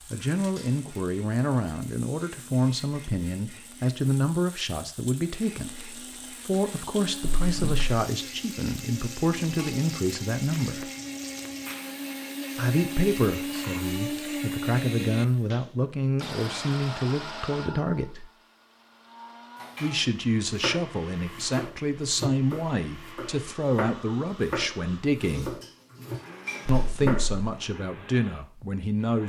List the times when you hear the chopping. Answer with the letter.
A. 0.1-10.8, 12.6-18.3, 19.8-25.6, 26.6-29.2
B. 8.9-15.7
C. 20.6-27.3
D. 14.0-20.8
C.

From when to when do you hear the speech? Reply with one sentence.
You can hear the speech from 0.1 to 10.8 s, from 12.6 to 18.3 s, from 19.8 to 25.6 s and from 26.6 to 29.2 s.